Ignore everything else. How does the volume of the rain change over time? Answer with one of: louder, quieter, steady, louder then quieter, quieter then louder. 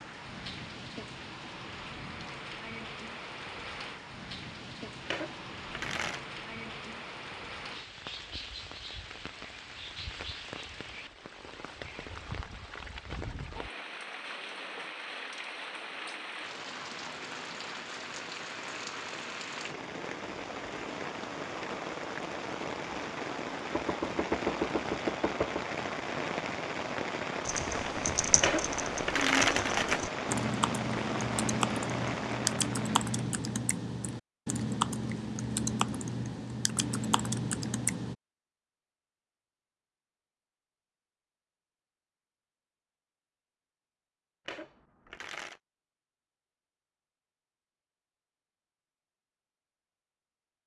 louder.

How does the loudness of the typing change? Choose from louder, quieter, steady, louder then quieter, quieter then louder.
steady.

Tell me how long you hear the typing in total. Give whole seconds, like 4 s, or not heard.
11 s.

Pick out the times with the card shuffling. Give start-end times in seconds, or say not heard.
5.0-6.2, 28.4-30.1, 44.5-45.6.